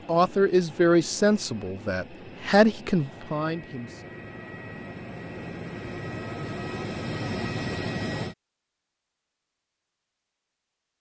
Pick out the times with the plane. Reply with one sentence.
The plane can be heard from 0.0 to 8.3 s.